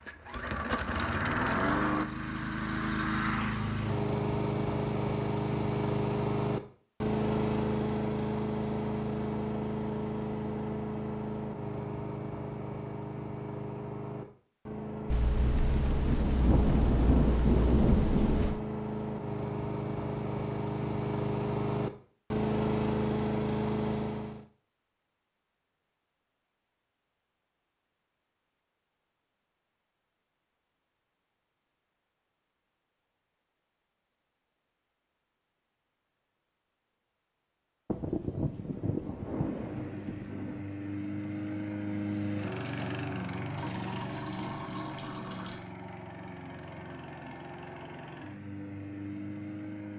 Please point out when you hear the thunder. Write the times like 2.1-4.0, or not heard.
15.1-18.6, 37.9-40.6.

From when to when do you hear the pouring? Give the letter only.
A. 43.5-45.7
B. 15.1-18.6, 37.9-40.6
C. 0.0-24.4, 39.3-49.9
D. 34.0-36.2
A.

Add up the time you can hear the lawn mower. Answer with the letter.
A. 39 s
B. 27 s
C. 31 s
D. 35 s
D.